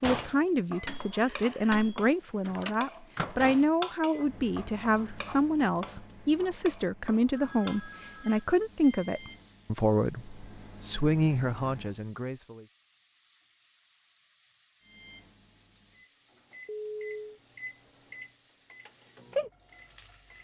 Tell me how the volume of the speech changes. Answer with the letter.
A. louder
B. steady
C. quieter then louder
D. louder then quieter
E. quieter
B.